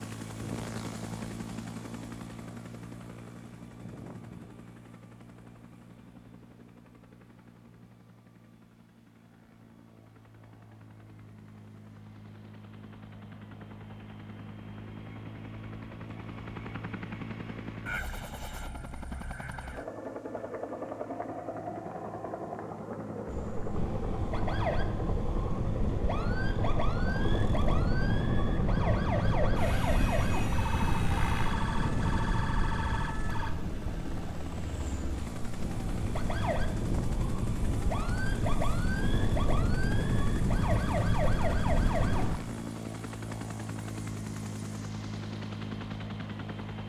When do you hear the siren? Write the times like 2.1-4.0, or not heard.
23.2-42.4.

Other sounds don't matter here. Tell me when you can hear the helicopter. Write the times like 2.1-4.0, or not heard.
0.0-46.8.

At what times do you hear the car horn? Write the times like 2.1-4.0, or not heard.
not heard.